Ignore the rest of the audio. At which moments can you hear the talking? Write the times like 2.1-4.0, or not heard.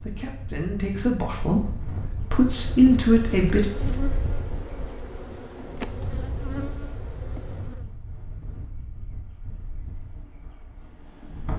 0.0-3.7.